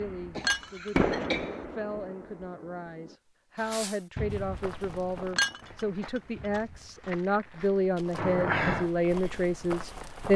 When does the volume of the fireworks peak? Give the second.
1 s.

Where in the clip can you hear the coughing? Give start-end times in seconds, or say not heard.
0.3-1.6, 8.2-8.9.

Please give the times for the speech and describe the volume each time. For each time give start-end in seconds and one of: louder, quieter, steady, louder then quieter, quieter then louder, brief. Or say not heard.
0.0-10.3 louder.